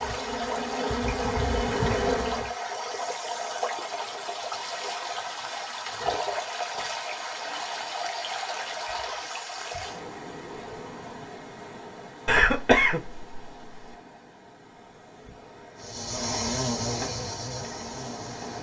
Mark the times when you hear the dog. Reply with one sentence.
The dog can't be heard in this clip.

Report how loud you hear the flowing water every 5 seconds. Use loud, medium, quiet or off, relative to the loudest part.
loud, loud, medium, medium.